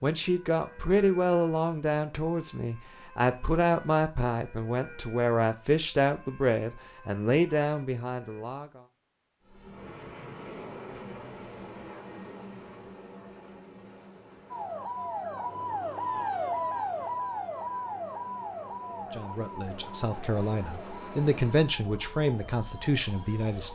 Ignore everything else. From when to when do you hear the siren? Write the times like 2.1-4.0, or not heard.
0.2-8.4, 14.5-23.7.